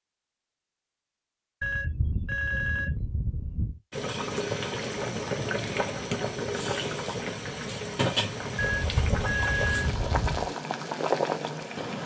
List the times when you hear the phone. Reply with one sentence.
You can hear the phone from 1.6 to 3.8 s and from 8.6 to 10.5 s.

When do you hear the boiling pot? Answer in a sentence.
You can hear the boiling pot from 3.9 to 12.0 s.